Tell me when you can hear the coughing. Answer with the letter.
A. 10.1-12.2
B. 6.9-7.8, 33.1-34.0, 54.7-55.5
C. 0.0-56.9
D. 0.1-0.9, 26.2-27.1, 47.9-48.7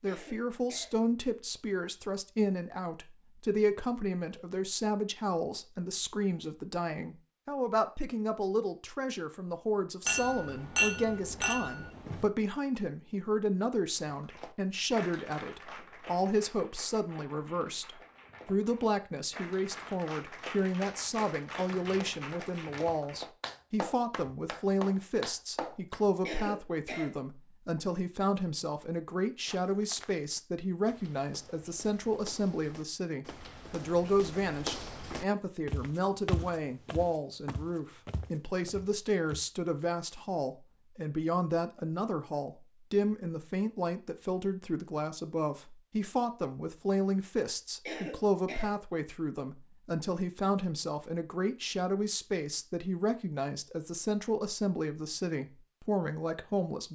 D.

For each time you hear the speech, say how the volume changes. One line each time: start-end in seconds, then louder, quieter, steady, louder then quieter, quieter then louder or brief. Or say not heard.
0.0-56.9 steady.